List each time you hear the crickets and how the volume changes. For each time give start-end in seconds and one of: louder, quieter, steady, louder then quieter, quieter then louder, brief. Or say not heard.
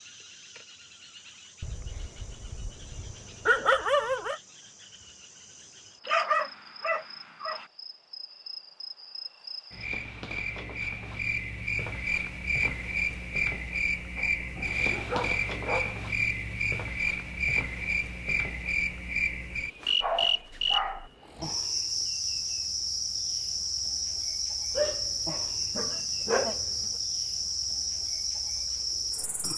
0.0-29.5 louder.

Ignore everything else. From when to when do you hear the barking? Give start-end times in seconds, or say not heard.
1.6-4.4, 6.0-7.7, 14.2-15.9, 20.0-21.1, 24.8-26.9.